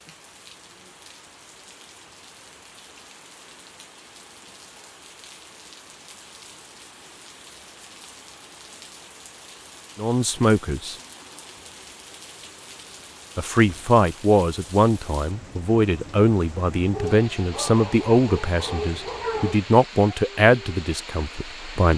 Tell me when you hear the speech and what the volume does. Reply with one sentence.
You can hear the speech briefly from 9.9 to 10.9 s; and from 13.3 to 21.9 s, at a steady volume.